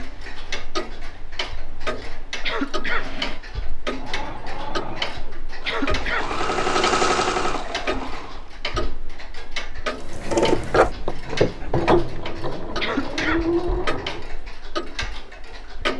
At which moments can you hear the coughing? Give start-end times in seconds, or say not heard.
2.4-3.1, 5.7-6.3, 12.8-13.5.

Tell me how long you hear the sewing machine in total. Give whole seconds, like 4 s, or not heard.
10 s.